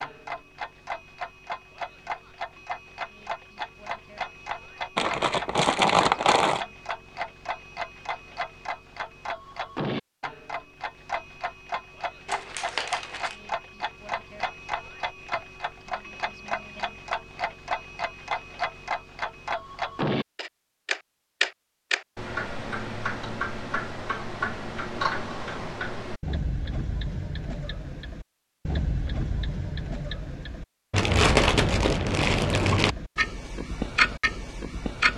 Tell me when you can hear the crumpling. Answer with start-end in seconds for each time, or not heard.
5.0-6.6, 12.2-13.3, 30.9-33.0.